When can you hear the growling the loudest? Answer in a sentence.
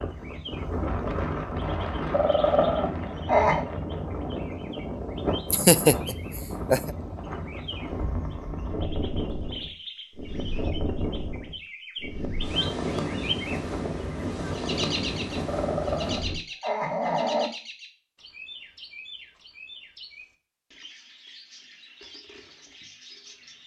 The volume of the growling peaks at 3 seconds.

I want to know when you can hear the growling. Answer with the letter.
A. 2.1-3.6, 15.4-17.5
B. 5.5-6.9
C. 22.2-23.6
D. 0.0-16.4
A.